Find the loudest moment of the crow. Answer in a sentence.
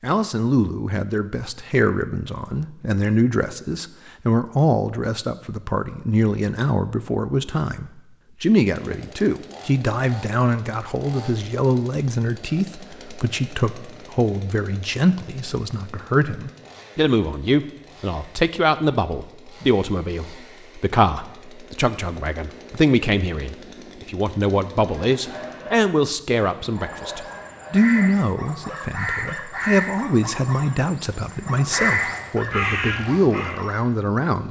The volume of the crow peaks at 32 seconds.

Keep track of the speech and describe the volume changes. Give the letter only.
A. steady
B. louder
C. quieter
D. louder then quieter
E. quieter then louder
A.